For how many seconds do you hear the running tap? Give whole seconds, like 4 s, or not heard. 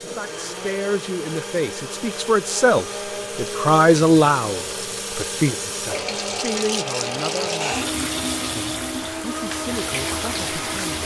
11 s.